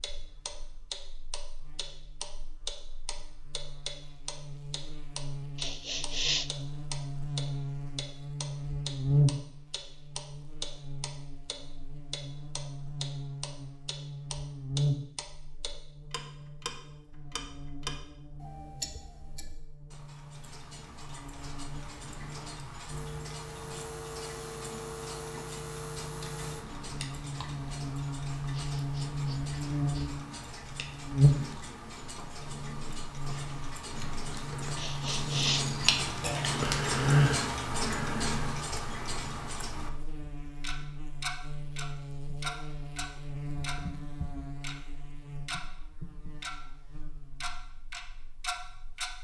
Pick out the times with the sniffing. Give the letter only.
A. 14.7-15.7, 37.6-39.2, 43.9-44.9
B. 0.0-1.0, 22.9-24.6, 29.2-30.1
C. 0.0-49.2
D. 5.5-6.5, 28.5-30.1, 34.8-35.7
D.